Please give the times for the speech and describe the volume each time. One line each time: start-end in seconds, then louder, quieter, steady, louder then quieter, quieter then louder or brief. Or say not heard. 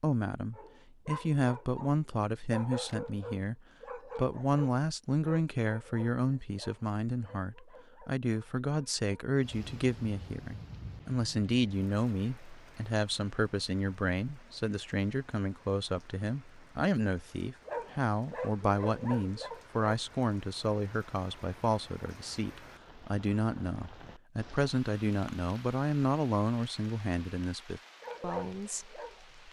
0.0-29.4 steady.